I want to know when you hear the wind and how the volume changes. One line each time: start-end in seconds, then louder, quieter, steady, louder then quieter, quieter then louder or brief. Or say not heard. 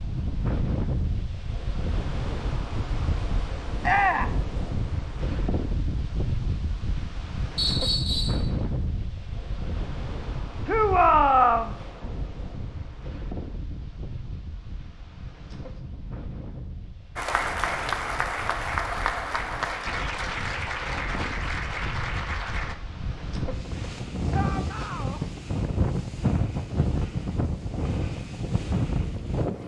0.0-29.6 quieter then louder.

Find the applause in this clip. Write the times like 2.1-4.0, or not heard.
17.1-22.8.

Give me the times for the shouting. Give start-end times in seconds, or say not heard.
3.8-4.3, 10.7-11.8, 24.3-25.2.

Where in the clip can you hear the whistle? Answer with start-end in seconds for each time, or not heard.
7.5-8.4.